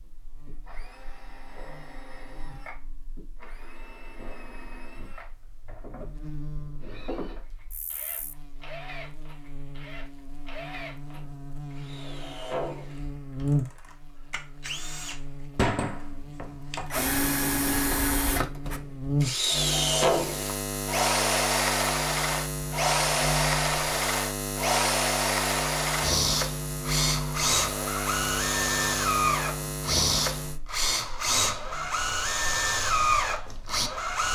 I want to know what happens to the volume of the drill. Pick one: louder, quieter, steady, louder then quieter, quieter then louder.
louder.